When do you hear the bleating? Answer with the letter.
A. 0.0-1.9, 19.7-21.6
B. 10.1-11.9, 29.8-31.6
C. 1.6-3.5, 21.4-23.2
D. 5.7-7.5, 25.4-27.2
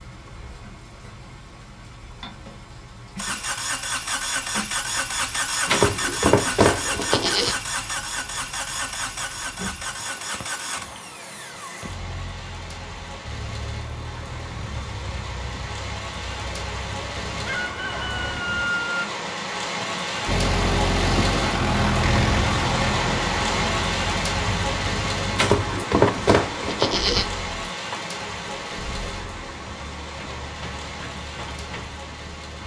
D.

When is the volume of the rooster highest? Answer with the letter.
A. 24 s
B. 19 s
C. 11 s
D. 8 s
B.